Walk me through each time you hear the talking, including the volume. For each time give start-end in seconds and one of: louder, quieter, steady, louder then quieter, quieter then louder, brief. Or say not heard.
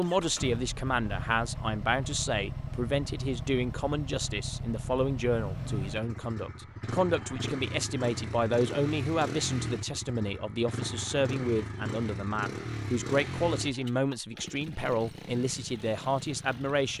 0.0-16.9 steady.